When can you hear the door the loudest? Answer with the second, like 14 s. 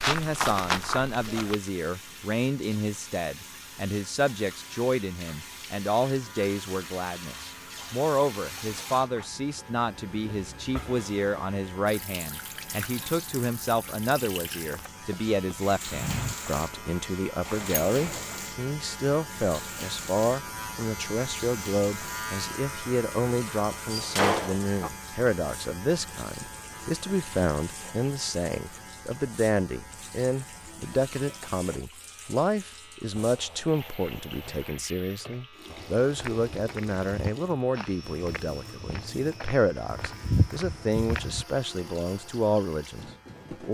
24 s.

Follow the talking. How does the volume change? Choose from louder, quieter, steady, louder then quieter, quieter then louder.
steady.